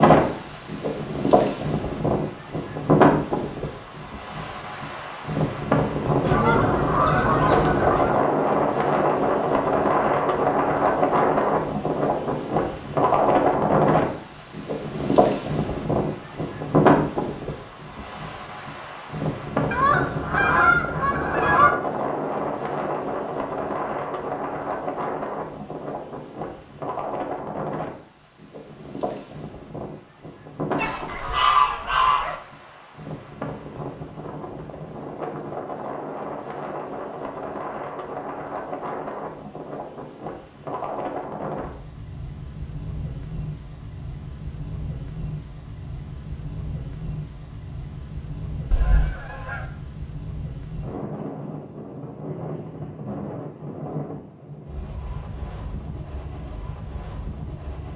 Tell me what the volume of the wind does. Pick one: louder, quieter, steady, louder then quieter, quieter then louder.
quieter.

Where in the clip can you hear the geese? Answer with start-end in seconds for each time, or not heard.
6.2-8.2, 19.7-21.7, 30.8-32.4, 48.7-49.6.